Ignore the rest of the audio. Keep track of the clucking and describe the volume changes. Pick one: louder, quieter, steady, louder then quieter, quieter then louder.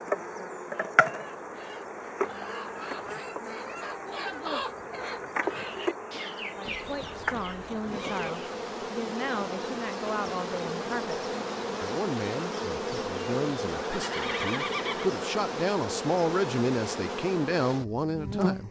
louder then quieter.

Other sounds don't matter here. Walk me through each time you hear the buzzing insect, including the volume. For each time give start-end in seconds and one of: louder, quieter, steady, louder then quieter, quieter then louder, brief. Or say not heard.
0.0-18.6 steady.